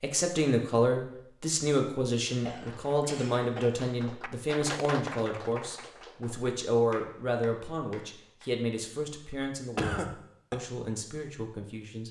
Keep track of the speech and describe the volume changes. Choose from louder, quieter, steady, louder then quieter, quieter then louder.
quieter.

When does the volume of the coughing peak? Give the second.
10 s.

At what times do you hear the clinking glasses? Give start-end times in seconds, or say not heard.
not heard.